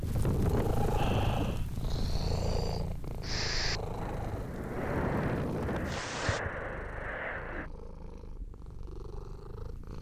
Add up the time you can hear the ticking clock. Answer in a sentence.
You can't hear the ticking clock here.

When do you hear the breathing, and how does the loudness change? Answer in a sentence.
You can hear the breathing from 0.9 to 7.7 s, getting louder.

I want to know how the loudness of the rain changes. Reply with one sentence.
The volume of the rain goes down, then up.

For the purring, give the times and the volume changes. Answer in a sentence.
You can hear the purring from 0.0 to 9.9 s, getting quieter.